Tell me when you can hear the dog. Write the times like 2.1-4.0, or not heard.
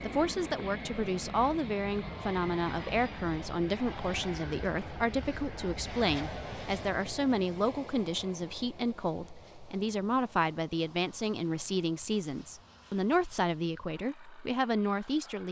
not heard.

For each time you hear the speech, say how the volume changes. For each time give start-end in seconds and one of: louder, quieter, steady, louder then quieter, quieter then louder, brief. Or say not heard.
0.0-15.4 steady.